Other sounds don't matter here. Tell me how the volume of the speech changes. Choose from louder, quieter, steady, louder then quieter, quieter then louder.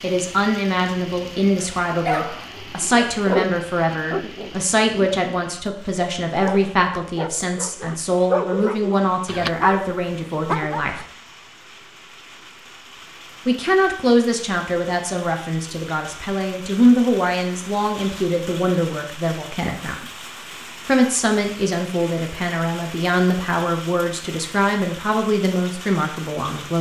steady.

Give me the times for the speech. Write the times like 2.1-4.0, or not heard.
0.0-11.0, 13.4-20.1, 20.9-26.7.